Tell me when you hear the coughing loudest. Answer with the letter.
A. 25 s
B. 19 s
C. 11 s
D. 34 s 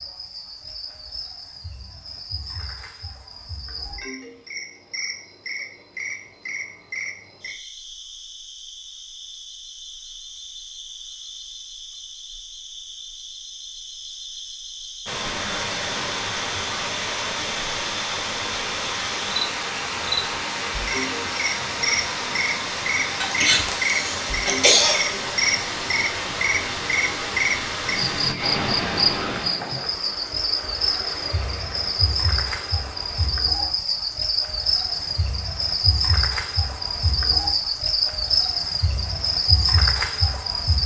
A.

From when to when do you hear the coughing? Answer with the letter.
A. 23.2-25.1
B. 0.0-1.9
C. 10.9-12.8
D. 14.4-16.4
A.